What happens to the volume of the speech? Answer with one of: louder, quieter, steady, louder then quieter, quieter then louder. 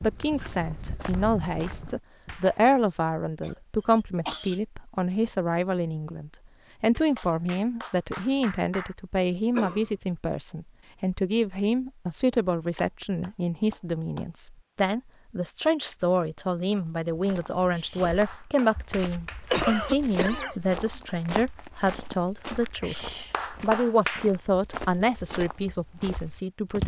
steady.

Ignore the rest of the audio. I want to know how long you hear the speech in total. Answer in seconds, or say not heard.
26 s.